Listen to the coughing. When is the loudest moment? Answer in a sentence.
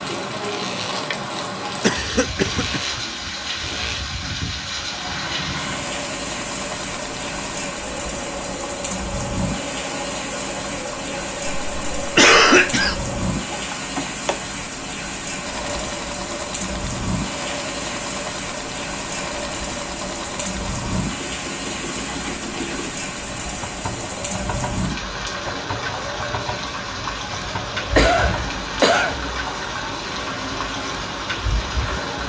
The loudest moment of the coughing is at 12 seconds.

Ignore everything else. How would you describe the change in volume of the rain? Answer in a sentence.
The volume of the rain stays about the same.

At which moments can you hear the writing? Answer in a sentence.
The writing can't be heard in this clip.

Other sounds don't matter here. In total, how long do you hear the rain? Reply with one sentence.
You can hear the rain for 32 seconds altogether.